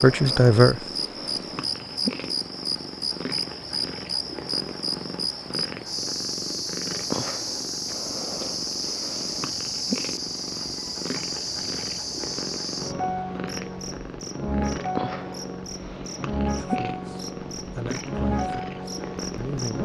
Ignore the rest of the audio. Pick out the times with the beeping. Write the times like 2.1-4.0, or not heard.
not heard.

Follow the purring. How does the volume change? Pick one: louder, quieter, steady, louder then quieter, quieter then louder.
steady.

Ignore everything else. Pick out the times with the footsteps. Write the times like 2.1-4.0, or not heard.
not heard.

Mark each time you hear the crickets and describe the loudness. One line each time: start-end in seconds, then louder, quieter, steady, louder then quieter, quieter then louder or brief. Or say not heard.
0.0-19.8 steady.